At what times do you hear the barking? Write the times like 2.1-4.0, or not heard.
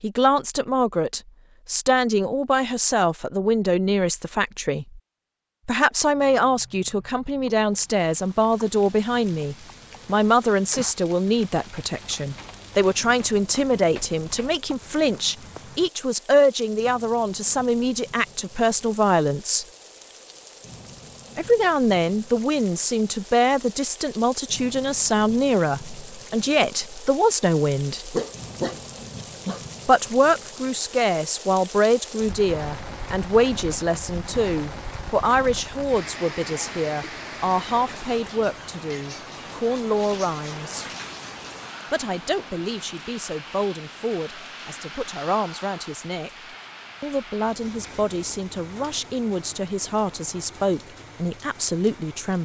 28.1-29.6.